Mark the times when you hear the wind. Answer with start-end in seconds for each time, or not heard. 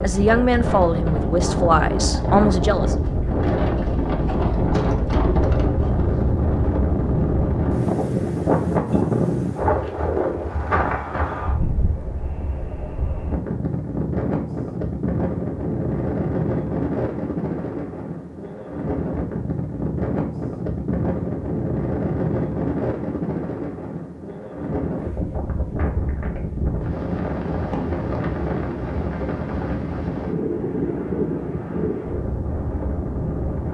0.0-33.6.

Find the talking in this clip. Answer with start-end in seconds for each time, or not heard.
0.0-3.0.